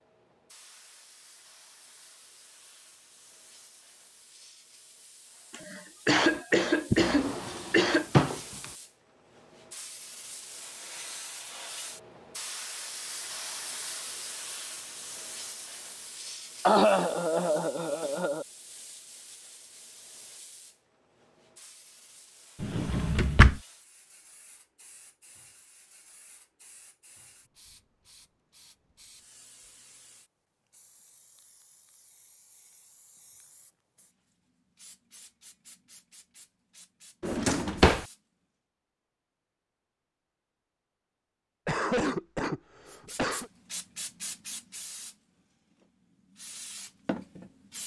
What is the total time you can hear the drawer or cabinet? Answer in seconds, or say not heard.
3 s.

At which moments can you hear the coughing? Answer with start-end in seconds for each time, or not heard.
6.0-8.1, 16.6-18.4, 41.6-43.5.